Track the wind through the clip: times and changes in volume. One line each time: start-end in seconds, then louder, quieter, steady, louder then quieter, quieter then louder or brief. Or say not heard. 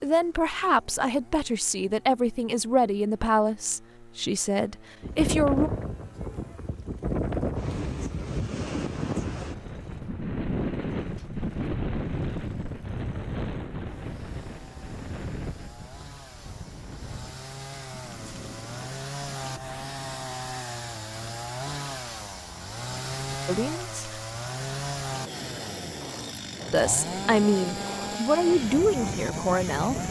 5.0-30.0 quieter then louder.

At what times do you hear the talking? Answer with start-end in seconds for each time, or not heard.
0.0-5.7, 23.4-24.0, 26.7-30.0.